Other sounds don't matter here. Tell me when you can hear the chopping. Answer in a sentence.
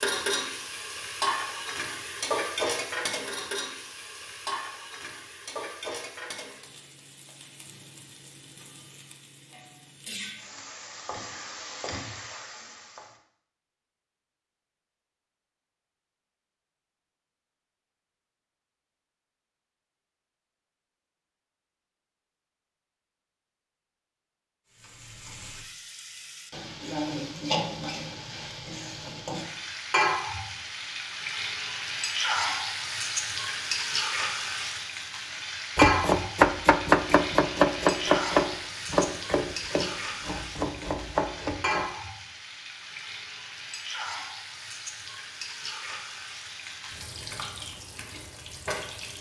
You can hear the chopping from 35.8 to 41.9 s.